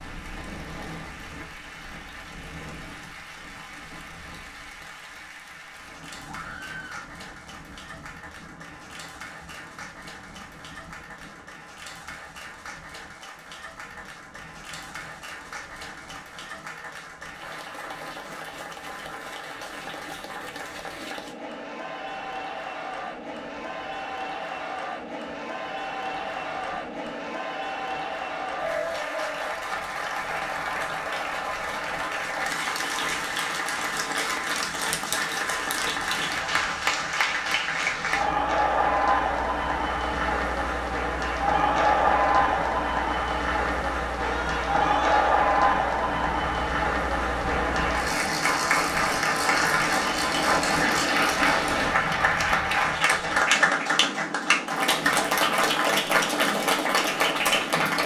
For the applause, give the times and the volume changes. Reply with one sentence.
The applause can be heard from 0.0 to 58.0 s, getting louder.